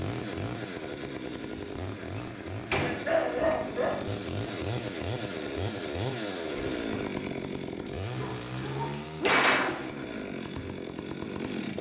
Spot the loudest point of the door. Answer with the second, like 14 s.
9 s.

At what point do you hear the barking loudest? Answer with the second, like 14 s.
3 s.